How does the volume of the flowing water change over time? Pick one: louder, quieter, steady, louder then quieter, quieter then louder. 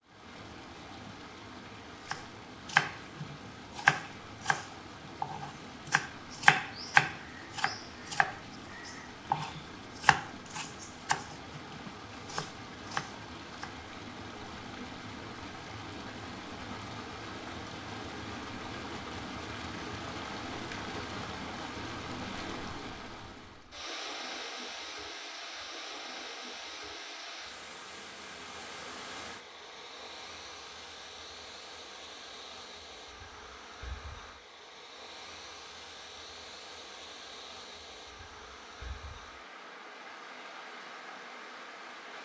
louder then quieter.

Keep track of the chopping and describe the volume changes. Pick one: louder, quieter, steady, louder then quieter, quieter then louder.
quieter.